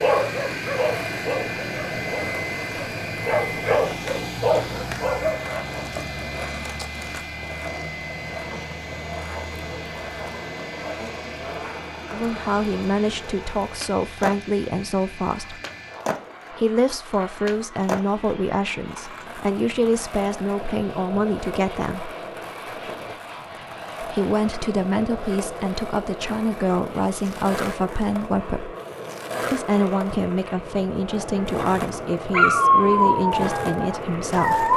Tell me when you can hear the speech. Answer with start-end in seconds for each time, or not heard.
12.1-15.6, 16.6-22.1, 24.0-28.7, 29.5-34.7.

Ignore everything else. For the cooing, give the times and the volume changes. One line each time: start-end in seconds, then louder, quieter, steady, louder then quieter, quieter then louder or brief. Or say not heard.
not heard.